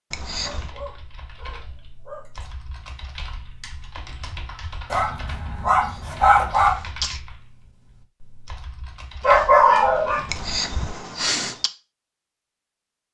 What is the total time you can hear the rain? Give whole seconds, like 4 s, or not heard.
not heard.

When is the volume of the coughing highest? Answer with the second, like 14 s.
11 s.